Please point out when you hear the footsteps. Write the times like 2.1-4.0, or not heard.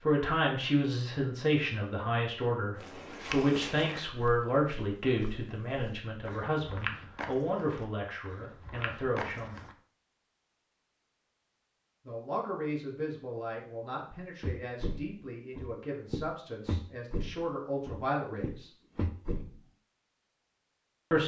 2.8-9.8, 14.4-19.6.